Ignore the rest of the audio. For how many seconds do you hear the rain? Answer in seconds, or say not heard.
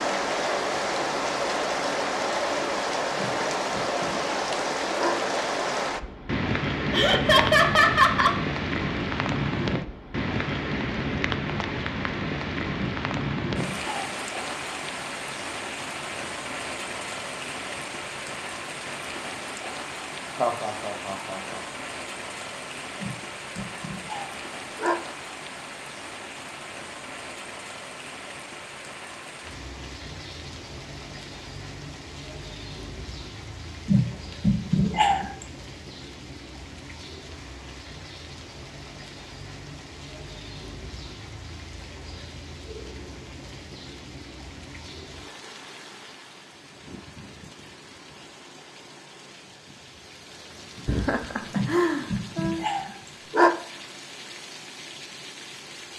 56 s.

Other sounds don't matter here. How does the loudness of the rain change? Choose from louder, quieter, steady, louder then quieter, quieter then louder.
quieter.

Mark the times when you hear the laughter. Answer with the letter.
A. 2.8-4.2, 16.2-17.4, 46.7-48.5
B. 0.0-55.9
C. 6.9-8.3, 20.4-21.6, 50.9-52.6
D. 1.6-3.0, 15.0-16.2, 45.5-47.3
C.